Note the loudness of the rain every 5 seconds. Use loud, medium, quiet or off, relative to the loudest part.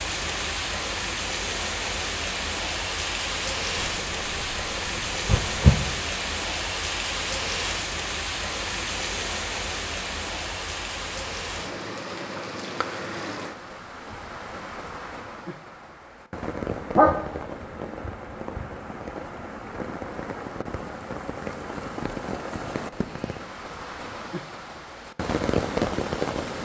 loud, loud, medium, medium, medium, loud.